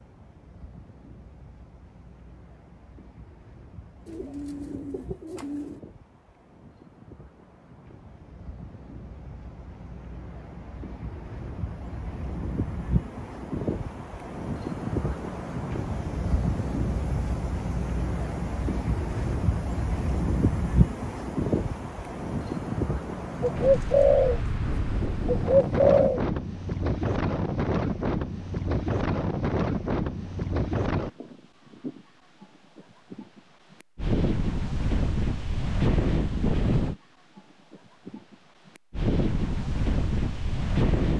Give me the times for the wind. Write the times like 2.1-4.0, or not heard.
0.0-41.1.